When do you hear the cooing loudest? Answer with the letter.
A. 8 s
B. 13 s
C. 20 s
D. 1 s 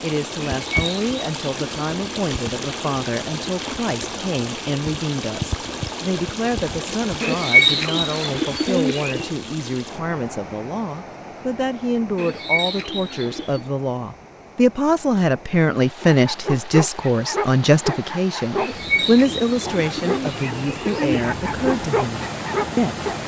A.